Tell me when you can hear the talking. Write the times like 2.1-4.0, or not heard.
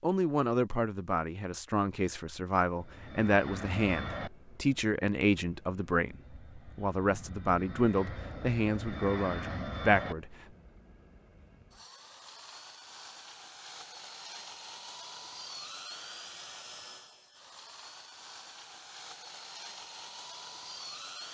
0.0-10.3.